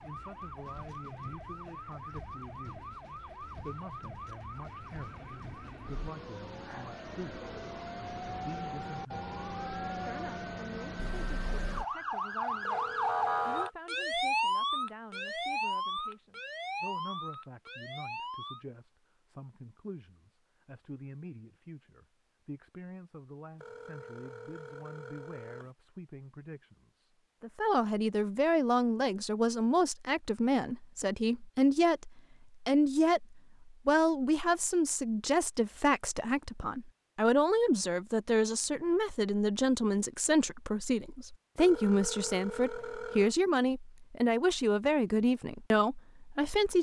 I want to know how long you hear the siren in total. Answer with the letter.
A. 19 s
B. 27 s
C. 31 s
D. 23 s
A.